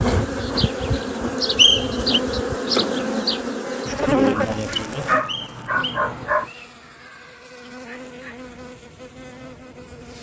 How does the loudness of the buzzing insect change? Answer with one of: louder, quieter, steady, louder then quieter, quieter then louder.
quieter.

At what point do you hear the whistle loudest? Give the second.
2 s.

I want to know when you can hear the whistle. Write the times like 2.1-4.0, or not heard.
1.6-2.2, 5.2-6.7.